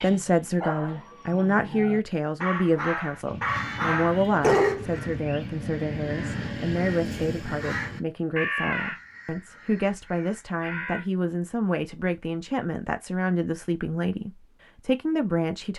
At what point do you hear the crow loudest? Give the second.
9 s.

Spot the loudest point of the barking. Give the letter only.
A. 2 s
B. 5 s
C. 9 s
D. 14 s
B.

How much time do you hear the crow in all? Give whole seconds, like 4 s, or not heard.
8 s.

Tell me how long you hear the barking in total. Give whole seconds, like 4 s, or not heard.
5 s.